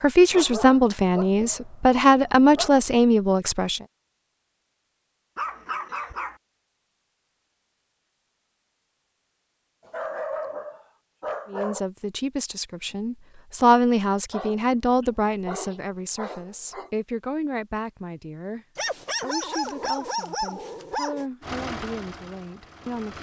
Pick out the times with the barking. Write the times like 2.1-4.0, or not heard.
0.3-2.9, 5.3-6.3, 9.8-11.8, 14.3-16.9, 18.8-21.2.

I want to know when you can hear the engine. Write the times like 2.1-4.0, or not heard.
21.4-23.1.